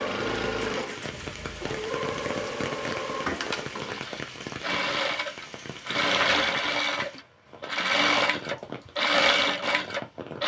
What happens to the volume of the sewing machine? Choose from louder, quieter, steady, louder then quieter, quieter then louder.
louder.